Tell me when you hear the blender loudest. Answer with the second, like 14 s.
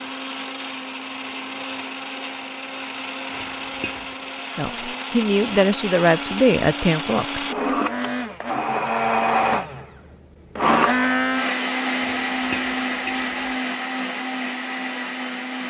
11 s.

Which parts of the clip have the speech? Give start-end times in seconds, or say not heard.
4.5-7.8.